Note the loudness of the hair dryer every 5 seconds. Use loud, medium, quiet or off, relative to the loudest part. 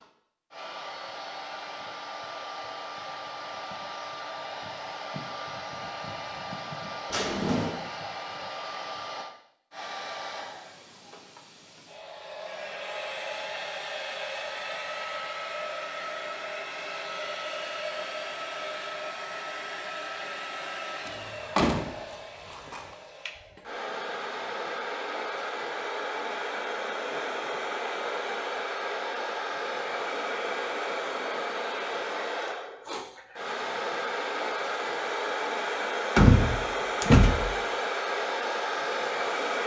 medium, medium, medium, medium, medium, loud, loud, loud.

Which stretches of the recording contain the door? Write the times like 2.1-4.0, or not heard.
7.1-7.8, 21.1-22.9, 36.1-37.5.